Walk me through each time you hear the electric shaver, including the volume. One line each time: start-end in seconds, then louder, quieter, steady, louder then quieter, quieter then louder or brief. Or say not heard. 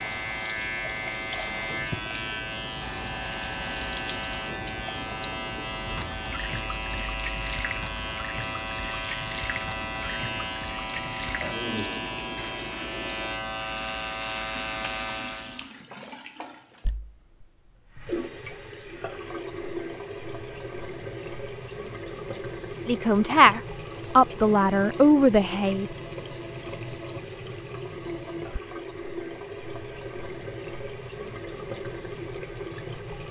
0.0-15.7 steady.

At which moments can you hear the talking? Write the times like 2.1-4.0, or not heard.
22.9-25.9.